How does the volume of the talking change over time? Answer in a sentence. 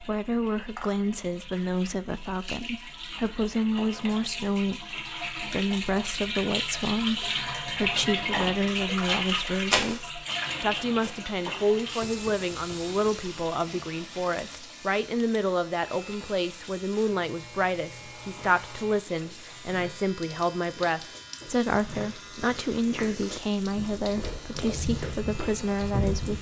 The volume of the talking stays about the same.